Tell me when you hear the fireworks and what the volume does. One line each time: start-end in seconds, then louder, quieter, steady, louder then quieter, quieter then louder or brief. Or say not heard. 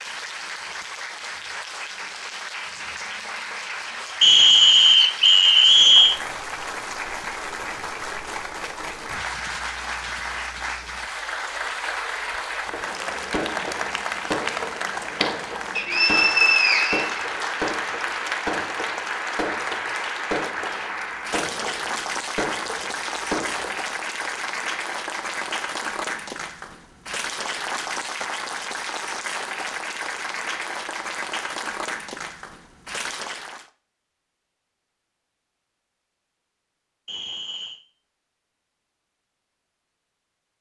12.7-23.8 steady.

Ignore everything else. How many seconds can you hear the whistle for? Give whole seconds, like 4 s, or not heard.
5 s.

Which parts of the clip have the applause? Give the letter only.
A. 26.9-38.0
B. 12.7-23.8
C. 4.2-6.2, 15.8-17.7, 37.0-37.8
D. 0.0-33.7
D.